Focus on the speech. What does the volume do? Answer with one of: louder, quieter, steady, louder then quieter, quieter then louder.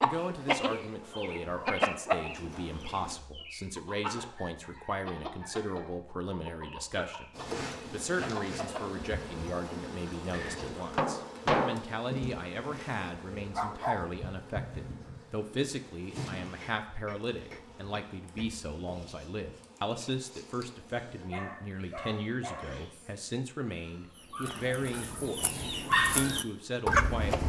steady.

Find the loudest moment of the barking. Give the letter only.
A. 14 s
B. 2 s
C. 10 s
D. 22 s
A.